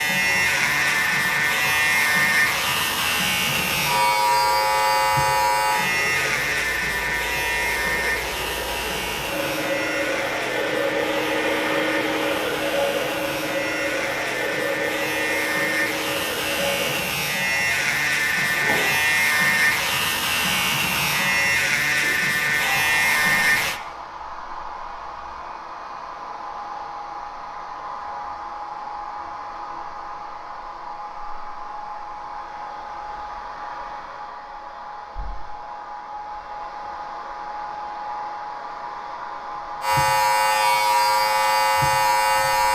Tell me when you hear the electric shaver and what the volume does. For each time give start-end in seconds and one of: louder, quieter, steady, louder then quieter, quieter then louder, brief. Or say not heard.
0.0-23.8 quieter then louder
39.8-42.7 brief.